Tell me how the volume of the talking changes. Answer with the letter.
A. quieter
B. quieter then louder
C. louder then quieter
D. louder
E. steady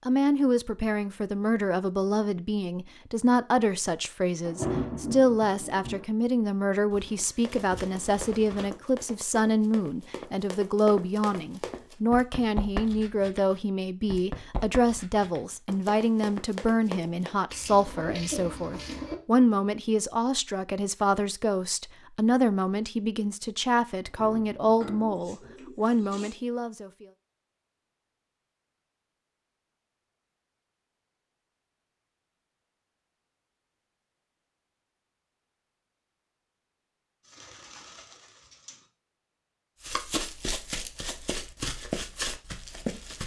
E.